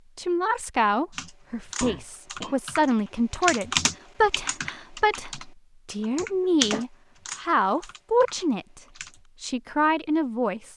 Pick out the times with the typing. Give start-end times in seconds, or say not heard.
1.1-9.2.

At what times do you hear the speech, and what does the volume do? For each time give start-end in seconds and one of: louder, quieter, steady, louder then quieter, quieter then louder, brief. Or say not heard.
0.1-8.8 steady
9.4-10.7 brief.